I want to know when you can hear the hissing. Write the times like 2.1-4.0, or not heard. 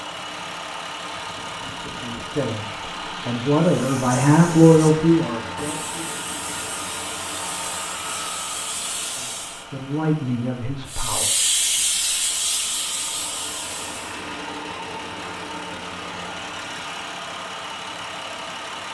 3.5-9.7, 10.8-14.2.